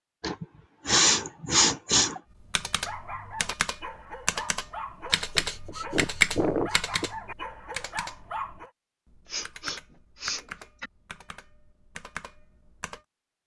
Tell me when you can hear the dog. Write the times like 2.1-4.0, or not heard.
2.6-8.7.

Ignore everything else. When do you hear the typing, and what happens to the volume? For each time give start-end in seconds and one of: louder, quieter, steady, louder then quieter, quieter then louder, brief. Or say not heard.
2.5-13.0 louder then quieter.